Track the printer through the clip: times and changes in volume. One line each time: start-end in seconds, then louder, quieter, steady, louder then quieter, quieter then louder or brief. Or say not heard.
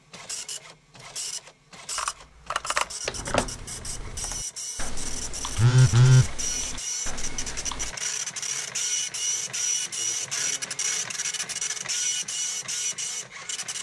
0.0-13.7 louder.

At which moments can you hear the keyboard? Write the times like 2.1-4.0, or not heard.
1.9-8.0.